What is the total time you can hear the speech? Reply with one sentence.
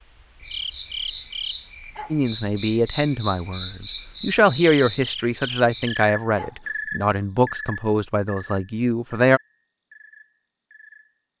You can hear the speech for 7 seconds altogether.